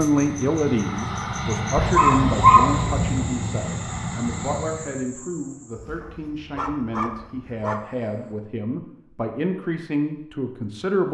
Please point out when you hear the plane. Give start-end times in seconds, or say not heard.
0.0-5.0.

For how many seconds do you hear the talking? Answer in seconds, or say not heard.
11 s.